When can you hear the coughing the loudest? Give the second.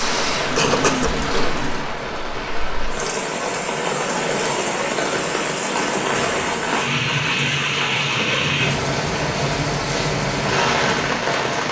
1 s.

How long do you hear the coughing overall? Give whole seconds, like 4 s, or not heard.
2 s.